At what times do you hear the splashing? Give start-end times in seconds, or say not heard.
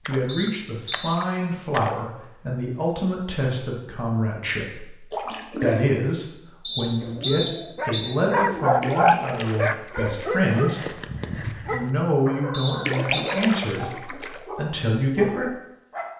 0.1-1.9, 5.1-6.0, 8.8-10.4, 12.8-14.4.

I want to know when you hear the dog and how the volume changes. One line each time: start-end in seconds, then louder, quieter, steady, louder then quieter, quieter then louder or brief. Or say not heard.
7.0-16.1 quieter.